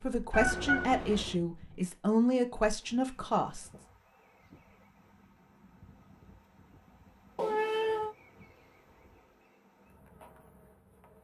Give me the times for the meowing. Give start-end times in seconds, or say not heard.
0.3-1.4, 7.3-8.2.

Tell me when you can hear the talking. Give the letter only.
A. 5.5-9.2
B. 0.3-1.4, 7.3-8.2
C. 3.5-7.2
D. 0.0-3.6
D.